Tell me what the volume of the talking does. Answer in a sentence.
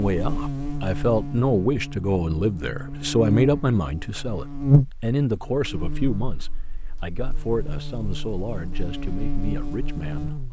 The volume of the talking goes down.